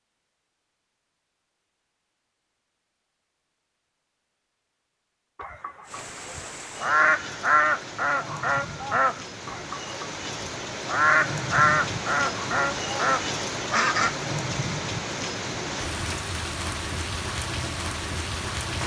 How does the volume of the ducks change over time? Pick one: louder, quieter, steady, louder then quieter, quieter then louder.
steady.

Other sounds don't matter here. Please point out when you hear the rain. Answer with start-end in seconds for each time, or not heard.
5.8-18.8.